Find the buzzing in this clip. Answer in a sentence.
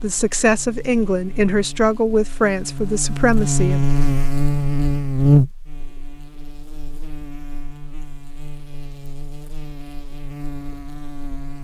You can hear the buzzing from 0.0 to 11.5 s.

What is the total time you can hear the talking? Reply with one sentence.
You can hear the talking for 4 seconds altogether.